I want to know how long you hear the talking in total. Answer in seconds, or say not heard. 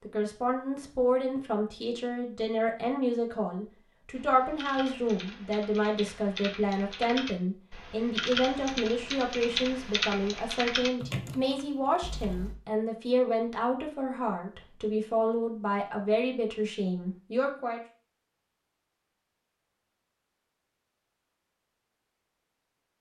18 s.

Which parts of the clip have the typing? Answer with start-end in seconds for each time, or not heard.
4.2-12.6.